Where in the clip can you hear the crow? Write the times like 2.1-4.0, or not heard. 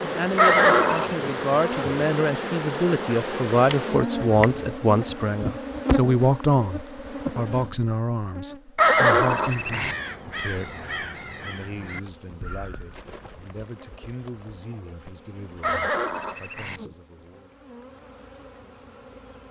9.4-13.6.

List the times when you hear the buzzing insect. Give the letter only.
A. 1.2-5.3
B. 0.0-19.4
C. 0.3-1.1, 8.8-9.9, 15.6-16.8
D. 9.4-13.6
B.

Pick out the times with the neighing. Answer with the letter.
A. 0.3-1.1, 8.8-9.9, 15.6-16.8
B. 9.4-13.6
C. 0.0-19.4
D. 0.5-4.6
A.